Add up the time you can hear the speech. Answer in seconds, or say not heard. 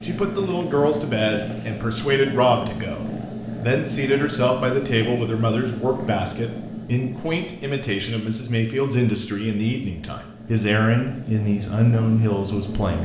13 s.